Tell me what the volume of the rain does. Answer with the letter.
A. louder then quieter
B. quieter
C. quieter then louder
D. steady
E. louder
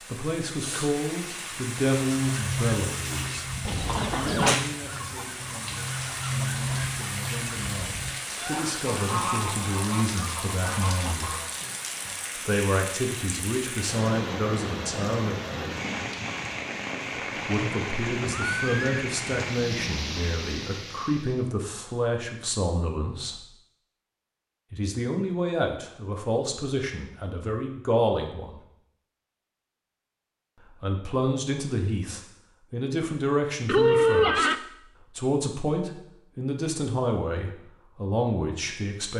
D.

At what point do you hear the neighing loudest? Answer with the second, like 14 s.
34 s.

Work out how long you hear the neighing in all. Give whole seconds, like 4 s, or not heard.
2 s.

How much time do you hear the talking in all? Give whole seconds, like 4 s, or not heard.
32 s.